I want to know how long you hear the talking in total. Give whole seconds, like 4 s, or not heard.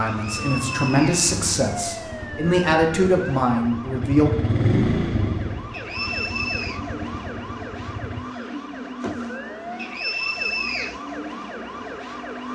4 s.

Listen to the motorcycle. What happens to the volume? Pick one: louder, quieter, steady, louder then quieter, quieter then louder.
louder then quieter.